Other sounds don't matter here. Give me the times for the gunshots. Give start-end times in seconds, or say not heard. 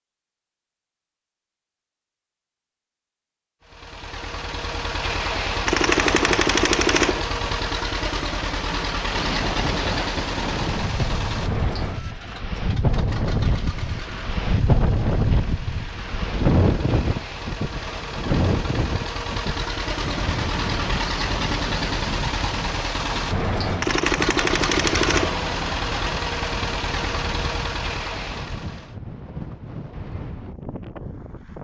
5.7-7.2, 23.8-25.4.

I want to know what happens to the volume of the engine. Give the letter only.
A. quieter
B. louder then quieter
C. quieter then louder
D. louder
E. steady
C.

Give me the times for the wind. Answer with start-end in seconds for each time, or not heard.
9.1-31.5.